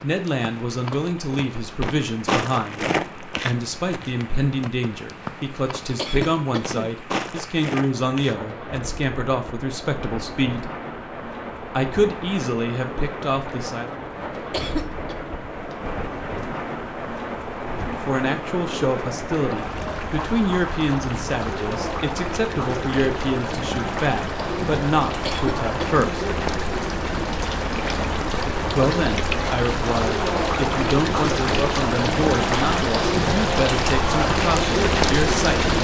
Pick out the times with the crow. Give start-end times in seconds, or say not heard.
not heard.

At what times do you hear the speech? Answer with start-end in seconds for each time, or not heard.
0.0-10.7, 11.7-13.9, 17.9-26.3, 28.7-35.7.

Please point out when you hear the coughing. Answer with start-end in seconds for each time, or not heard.
6.0-7.0, 14.5-15.2, 25.2-26.1.